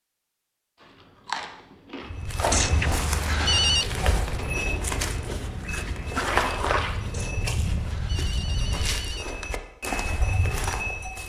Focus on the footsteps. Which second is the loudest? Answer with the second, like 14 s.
6 s.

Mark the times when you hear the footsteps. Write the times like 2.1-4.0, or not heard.
2.0-11.2.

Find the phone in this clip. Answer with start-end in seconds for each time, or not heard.
2.5-3.9, 7.1-9.6.